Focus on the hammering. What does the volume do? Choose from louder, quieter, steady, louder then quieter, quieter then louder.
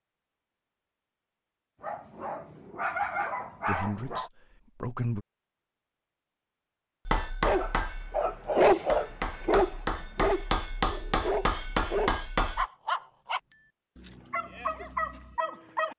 louder.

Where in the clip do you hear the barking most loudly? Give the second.
9 s.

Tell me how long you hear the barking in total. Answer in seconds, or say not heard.
11 s.